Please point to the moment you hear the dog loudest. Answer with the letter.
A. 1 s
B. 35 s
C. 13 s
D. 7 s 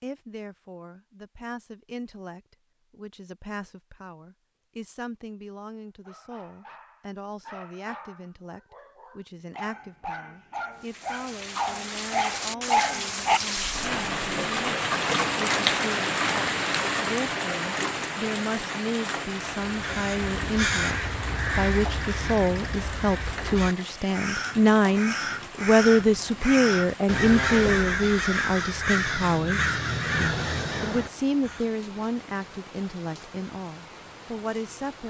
C.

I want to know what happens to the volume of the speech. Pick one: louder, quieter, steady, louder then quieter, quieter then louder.
louder then quieter.